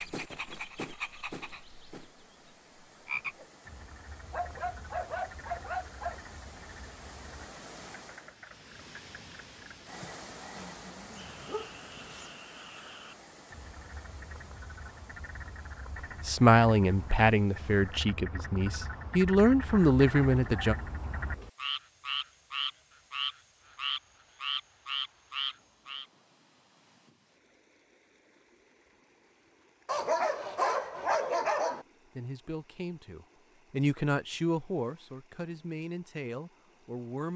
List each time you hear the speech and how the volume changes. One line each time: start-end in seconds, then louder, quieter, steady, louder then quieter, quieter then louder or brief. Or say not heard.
16.2-20.8 quieter then louder
32.1-37.3 louder then quieter.